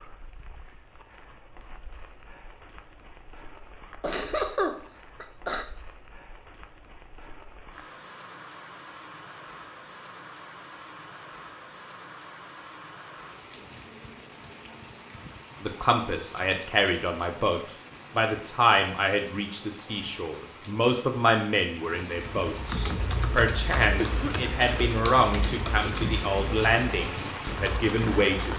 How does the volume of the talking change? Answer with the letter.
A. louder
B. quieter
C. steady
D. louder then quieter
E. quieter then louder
C.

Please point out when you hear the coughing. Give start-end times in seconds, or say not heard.
4.0-5.7, 23.9-24.9.